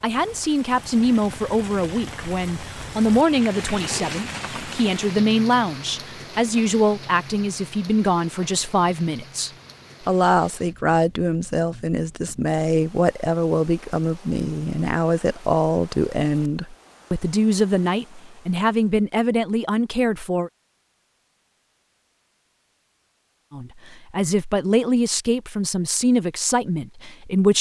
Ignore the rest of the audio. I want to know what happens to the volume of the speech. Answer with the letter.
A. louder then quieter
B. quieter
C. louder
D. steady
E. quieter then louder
D.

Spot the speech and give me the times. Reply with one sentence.
You can hear the speech from 0.0 to 20.5 s and from 23.5 to 27.5 s.